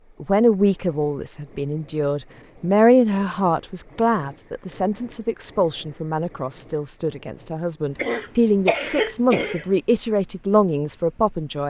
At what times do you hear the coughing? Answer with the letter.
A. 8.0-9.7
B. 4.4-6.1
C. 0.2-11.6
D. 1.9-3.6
A.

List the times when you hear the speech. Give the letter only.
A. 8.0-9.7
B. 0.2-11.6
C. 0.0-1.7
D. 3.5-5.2
B.